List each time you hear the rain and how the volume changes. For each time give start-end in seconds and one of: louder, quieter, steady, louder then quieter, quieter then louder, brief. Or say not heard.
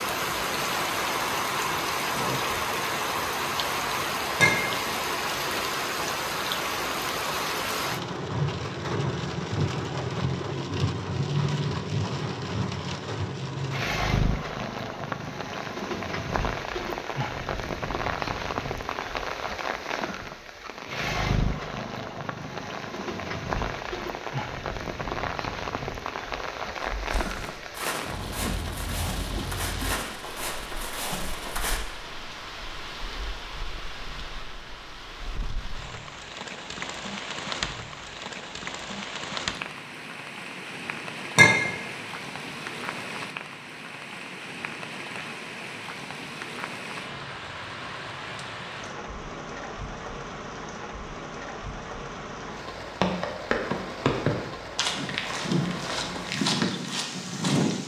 0.0-57.8 quieter.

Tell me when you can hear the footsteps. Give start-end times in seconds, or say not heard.
26.9-31.8, 53.0-57.8.